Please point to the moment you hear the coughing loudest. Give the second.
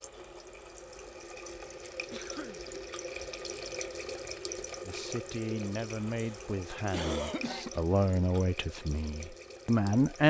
7 s.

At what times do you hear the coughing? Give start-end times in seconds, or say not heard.
2.1-2.6, 6.2-7.7.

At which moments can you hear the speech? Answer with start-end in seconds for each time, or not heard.
4.8-10.2.